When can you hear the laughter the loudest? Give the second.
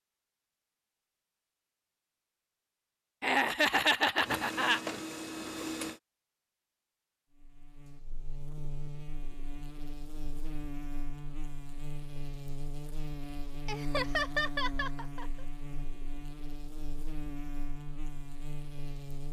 4 s.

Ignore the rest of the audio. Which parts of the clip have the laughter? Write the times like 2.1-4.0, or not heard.
3.2-4.8, 13.7-15.4.